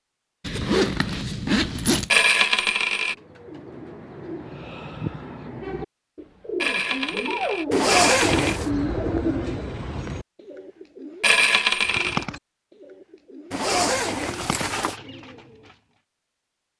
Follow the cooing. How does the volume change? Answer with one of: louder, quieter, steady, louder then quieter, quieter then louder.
louder then quieter.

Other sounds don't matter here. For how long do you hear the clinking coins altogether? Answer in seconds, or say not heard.
4 s.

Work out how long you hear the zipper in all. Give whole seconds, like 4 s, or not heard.
4 s.